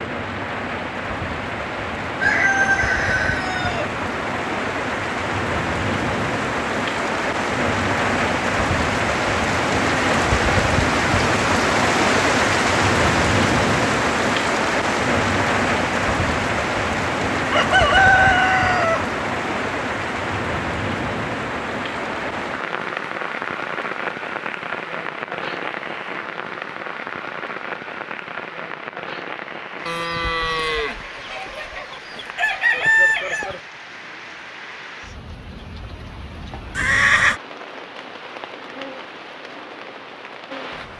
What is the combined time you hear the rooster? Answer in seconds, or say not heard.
7 s.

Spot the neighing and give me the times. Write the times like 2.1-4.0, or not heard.
36.8-37.4.